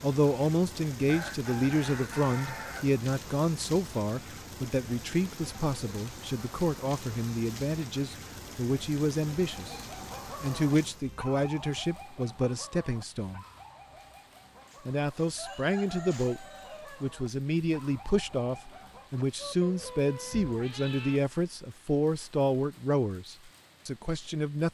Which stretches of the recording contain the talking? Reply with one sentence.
You can hear the talking from 0.0 to 9.8 s, from 10.4 to 13.4 s and from 14.8 to 24.6 s.